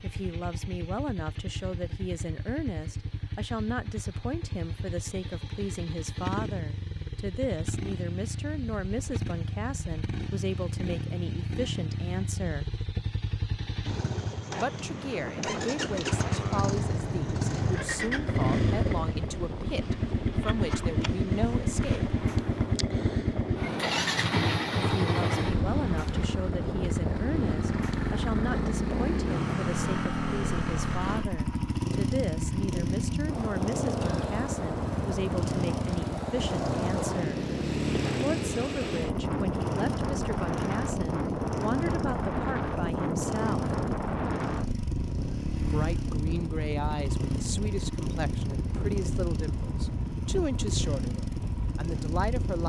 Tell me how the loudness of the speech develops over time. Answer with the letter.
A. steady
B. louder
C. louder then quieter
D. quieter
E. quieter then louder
A.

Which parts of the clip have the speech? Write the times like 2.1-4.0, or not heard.
0.0-12.8, 14.6-22.1, 24.8-37.4, 38.1-43.8, 45.5-52.6.